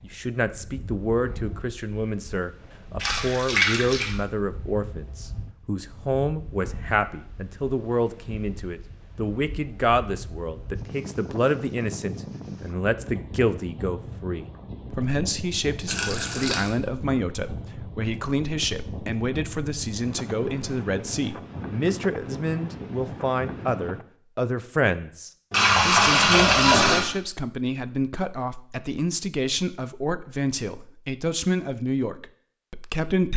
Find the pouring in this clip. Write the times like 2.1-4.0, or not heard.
3.0-4.2, 15.8-16.7, 25.5-27.1.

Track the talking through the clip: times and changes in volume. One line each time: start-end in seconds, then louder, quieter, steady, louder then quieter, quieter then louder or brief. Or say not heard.
0.0-33.3 steady.